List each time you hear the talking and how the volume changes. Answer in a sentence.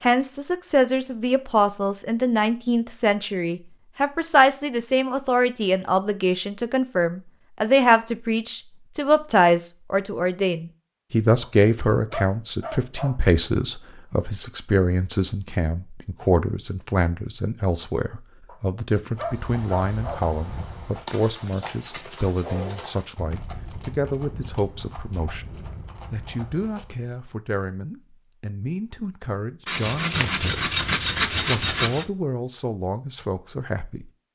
The talking can be heard from 0.0 to 34.1 s, getting quieter.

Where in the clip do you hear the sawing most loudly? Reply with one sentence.
The loudest moment of the sawing is at 31 seconds.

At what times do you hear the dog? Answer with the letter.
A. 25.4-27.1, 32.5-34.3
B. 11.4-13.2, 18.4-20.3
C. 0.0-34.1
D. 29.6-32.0
B.